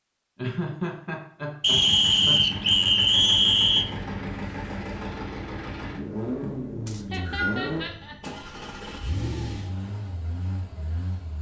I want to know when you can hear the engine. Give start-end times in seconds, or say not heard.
1.6-11.3.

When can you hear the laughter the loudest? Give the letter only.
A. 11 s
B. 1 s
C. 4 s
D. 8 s
B.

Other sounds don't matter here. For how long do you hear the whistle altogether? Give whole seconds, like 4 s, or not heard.
3 s.